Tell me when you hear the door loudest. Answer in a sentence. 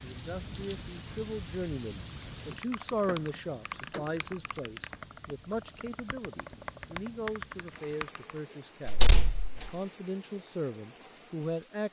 The loudest moment of the door is at 9 seconds.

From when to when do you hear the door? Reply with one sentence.
The door can be heard from 2.9 to 4.2 s and from 8.8 to 9.7 s.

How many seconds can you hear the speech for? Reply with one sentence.
You can hear the speech for 12 seconds altogether.